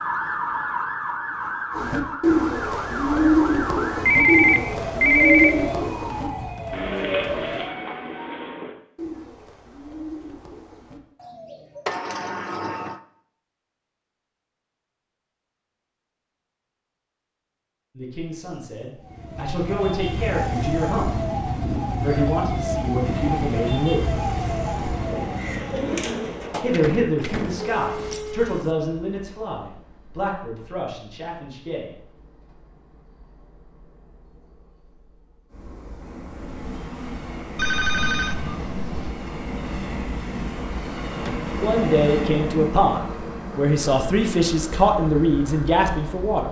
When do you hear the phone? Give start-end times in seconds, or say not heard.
4.0-5.5, 27.2-28.7, 37.5-39.1.